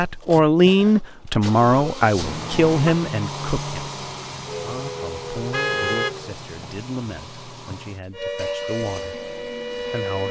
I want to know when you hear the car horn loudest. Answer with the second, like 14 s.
6 s.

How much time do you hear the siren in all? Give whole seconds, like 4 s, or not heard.
4 s.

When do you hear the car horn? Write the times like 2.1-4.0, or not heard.
2.2-2.9, 5.5-6.2.